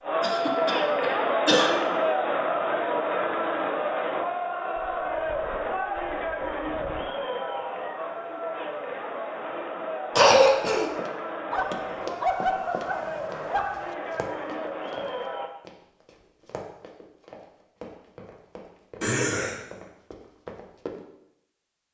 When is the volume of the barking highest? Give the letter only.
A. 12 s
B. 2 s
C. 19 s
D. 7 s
A.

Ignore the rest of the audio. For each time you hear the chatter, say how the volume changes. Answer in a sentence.
You can hear the chatter from 0.0 to 15.5 s, getting quieter.